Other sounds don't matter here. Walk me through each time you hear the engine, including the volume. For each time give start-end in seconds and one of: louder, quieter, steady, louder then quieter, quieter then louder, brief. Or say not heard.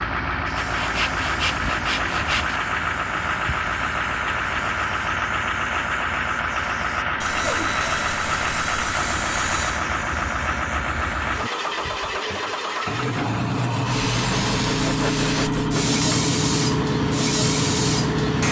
0.0-18.4 steady.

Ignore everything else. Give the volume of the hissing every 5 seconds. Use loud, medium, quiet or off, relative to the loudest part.
quiet, quiet, medium, loud.